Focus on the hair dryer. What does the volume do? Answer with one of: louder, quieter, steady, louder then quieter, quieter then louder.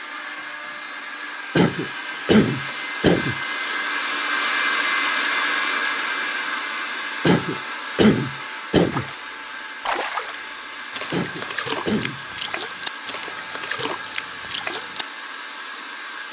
louder then quieter.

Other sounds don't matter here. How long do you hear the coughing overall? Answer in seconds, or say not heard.
5 s.